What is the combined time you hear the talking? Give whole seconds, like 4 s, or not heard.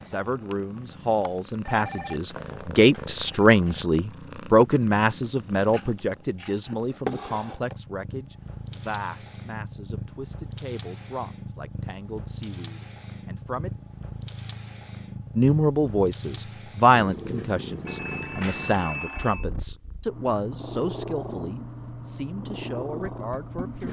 22 s.